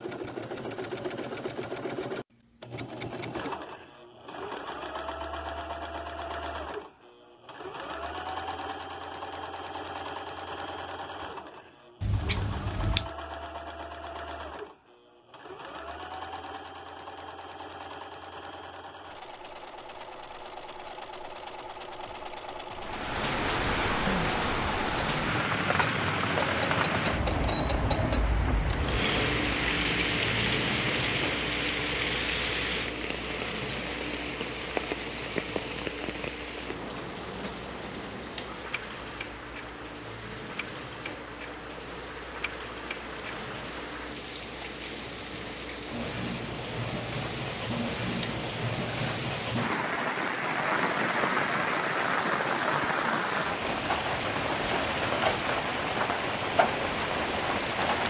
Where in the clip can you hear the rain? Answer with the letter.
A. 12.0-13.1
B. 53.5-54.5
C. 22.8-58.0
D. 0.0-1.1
C.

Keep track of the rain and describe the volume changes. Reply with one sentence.
The volume of the rain goes down, then up.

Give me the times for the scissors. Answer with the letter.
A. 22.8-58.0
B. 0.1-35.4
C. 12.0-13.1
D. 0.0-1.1
C.